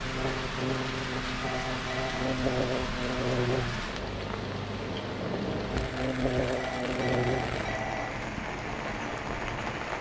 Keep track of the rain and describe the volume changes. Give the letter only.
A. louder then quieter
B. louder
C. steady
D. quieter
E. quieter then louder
C.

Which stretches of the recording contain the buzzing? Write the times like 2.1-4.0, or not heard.
0.0-7.6.